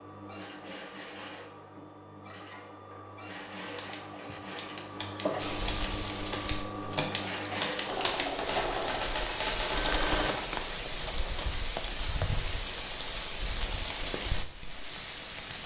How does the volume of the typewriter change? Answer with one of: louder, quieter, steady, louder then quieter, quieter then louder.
louder.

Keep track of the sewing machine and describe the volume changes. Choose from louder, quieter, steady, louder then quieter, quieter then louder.
louder.